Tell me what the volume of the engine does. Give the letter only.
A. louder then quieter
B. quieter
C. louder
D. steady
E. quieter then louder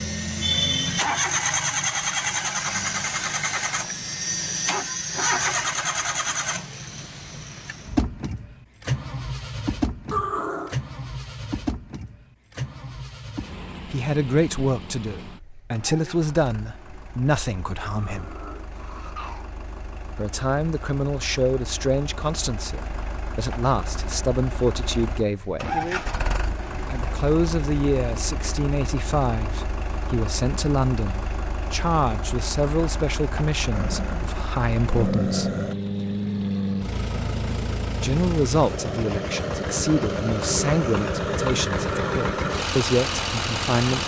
E.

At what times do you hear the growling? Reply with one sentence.
The growling can be heard from 10.1 to 10.8 s, from 17.8 to 19.4 s and from 33.7 to 35.8 s.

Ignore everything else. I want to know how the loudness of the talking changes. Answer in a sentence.
The volume of the talking stays about the same.